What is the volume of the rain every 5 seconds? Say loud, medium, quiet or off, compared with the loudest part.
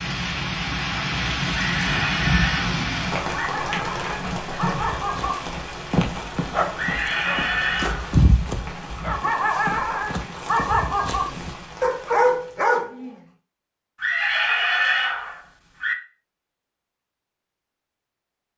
loud, medium, quiet, off.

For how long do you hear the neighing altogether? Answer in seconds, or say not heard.
6 s.